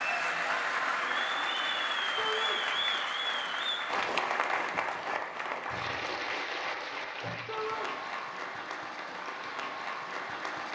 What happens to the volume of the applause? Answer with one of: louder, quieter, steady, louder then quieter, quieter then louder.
quieter.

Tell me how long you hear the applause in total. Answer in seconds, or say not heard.
11 s.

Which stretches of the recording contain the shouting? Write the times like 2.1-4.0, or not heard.
2.1-2.6, 7.5-7.9.